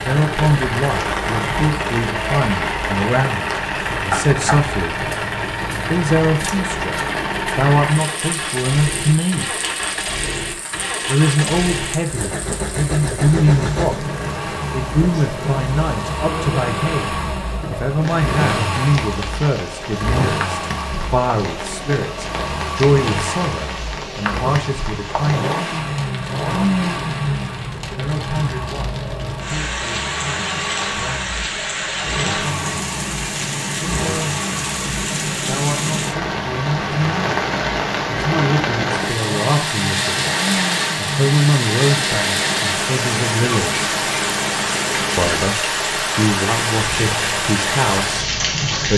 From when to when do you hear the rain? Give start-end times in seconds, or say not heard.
0.0-48.9.